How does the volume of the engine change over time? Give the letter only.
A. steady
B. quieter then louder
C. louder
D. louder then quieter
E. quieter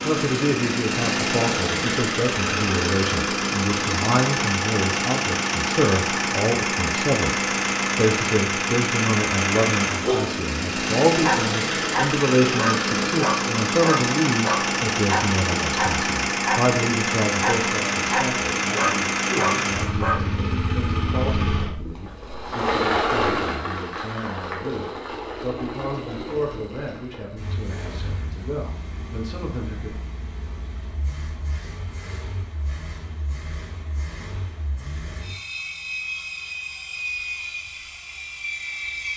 E.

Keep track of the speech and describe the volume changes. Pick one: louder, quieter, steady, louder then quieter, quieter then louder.
quieter.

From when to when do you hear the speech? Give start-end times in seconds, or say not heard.
0.0-29.9.